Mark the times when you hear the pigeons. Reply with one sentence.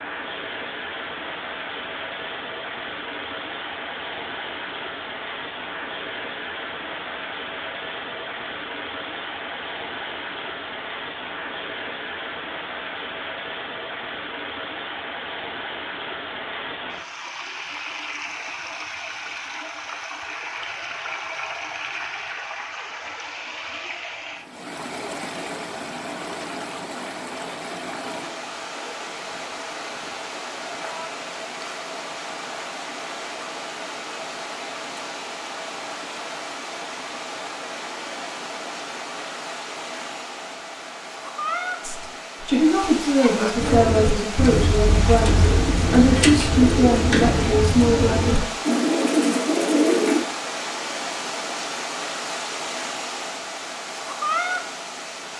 You can hear the pigeons from 43.5 to 50.2 s.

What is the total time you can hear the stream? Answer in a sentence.
You can hear the stream for 55 seconds altogether.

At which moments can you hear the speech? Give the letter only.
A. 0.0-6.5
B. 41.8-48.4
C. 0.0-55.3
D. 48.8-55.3
B.